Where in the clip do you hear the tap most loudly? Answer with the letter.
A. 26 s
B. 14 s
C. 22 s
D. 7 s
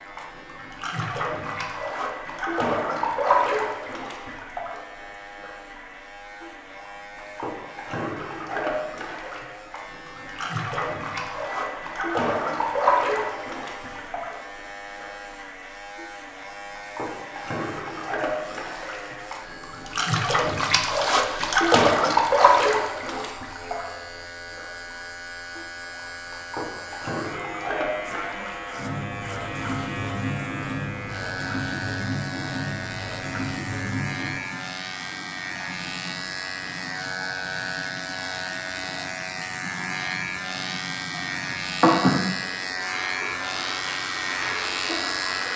C.